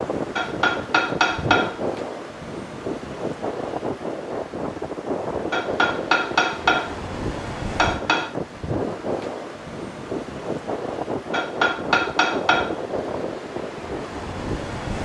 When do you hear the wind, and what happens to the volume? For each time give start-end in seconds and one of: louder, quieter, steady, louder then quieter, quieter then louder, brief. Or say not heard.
0.0-14.9 steady.